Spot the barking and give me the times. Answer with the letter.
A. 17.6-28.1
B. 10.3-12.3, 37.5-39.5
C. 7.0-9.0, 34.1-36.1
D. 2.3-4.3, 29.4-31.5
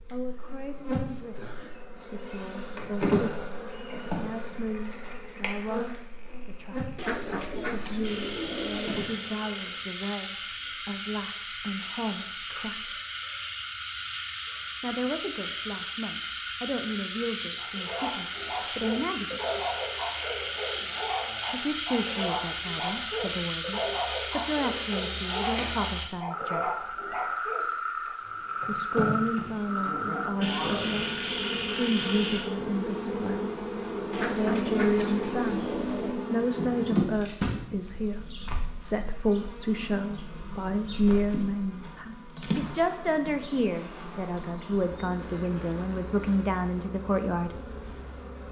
A.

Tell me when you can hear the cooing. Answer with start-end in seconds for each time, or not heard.
7.0-9.0, 34.1-36.1.